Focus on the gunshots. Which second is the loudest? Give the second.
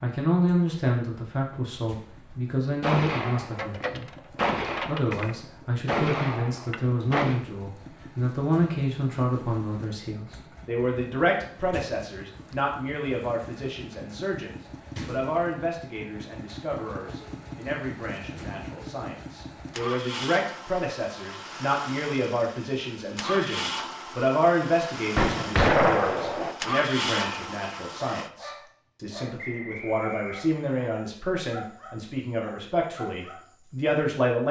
26 s.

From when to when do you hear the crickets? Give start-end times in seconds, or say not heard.
not heard.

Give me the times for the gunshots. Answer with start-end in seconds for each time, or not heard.
2.8-7.4, 25.1-26.6.